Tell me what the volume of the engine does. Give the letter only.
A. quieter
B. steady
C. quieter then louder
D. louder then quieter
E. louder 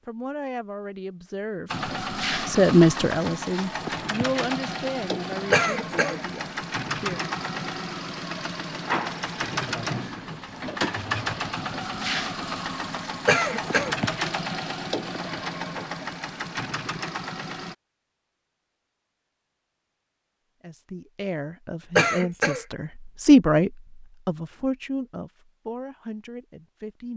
B.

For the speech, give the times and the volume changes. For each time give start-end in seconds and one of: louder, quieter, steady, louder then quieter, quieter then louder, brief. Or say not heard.
0.1-7.2 louder then quieter
20.6-27.1 louder then quieter.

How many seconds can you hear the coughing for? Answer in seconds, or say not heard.
2 s.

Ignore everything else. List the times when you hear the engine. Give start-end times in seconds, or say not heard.
1.6-17.8.